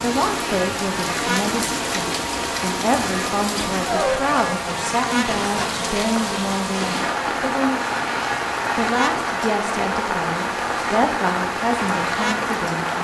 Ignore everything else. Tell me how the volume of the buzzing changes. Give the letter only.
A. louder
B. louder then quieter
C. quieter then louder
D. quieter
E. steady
E.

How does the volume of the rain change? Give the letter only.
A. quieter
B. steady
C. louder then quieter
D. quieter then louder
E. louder
B.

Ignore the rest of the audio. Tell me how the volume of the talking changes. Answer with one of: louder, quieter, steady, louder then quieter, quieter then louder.
steady.